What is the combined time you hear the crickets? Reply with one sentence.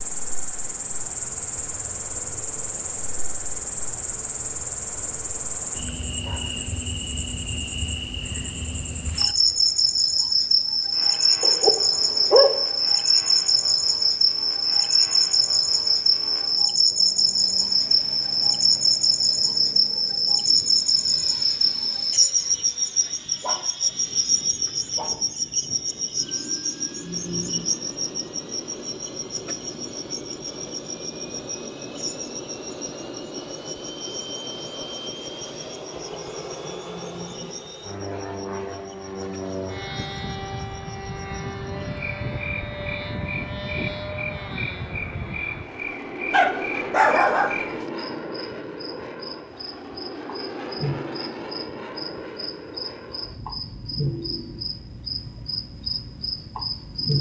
You can hear the crickets for 57 seconds altogether.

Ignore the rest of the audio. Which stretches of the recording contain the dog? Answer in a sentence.
The dog can be heard from 11.4 to 12.6 s, from 23.4 to 25.1 s and from 46.3 to 47.9 s.